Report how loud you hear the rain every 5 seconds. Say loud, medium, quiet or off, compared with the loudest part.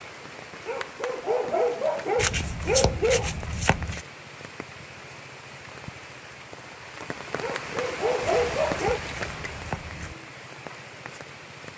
medium, loud, medium.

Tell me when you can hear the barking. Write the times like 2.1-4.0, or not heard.
0.7-3.4, 7.4-9.0.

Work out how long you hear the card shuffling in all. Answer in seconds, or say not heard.
4 s.